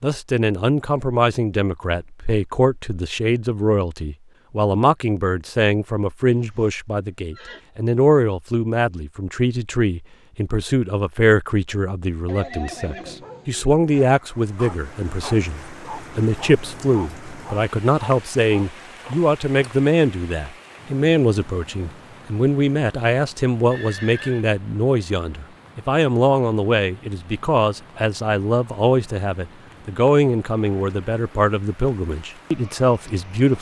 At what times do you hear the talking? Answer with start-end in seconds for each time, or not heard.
0.0-33.5.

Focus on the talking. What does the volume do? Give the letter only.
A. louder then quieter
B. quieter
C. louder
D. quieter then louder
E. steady
E.